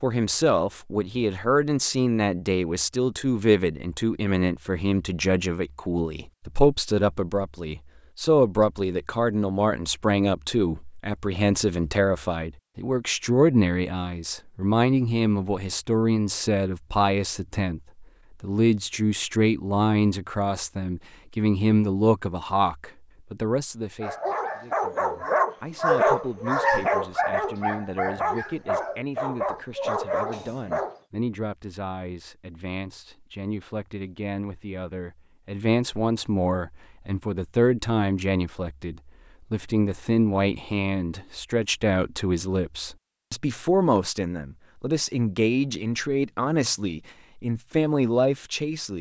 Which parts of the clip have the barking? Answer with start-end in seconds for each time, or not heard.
24.0-31.0.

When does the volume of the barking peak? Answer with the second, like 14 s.
26 s.